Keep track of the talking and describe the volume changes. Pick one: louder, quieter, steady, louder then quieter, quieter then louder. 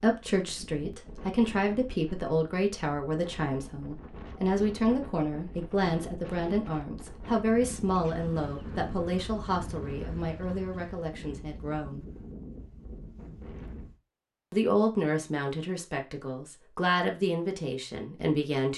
steady.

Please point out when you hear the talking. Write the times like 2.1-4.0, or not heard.
0.0-12.1, 14.5-18.7.